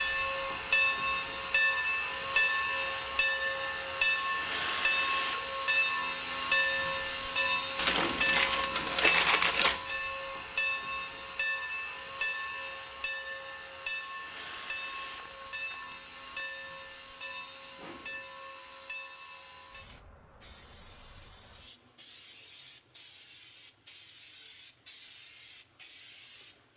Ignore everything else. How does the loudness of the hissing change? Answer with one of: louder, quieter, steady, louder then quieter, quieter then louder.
quieter.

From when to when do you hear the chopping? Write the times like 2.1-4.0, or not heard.
not heard.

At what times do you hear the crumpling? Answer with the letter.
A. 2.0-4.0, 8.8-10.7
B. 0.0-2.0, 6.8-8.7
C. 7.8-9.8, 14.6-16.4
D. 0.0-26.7
C.